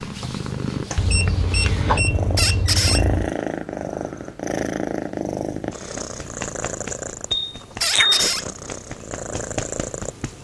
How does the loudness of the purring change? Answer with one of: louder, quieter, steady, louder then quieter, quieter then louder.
steady.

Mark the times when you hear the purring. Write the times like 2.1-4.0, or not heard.
0.0-10.3.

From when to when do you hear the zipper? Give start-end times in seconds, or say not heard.
not heard.